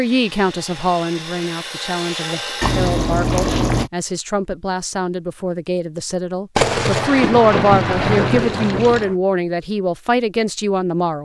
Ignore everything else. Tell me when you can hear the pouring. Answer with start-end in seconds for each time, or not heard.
2.6-3.9, 7.6-9.1.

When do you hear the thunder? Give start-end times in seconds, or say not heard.
6.5-9.2.